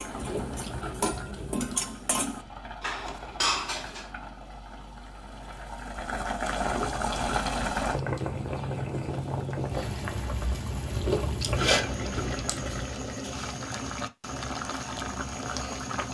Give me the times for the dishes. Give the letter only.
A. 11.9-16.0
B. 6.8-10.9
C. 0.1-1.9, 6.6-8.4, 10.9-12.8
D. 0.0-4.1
D.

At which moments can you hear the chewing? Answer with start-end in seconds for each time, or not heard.
0.1-1.9, 6.6-8.4, 10.9-12.8.